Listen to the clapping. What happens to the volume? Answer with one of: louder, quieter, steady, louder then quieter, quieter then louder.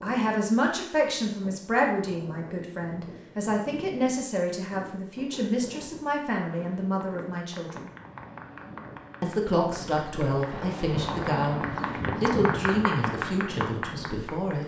louder.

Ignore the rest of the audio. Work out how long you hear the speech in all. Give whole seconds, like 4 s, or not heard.
13 s.